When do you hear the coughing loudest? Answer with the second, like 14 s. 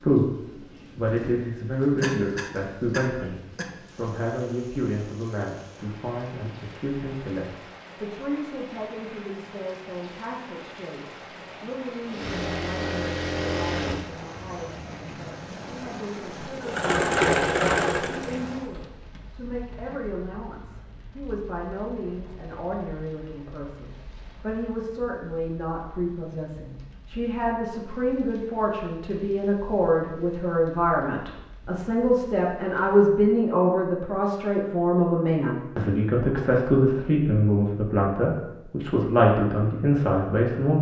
2 s.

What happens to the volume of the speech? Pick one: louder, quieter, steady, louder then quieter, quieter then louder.
quieter then louder.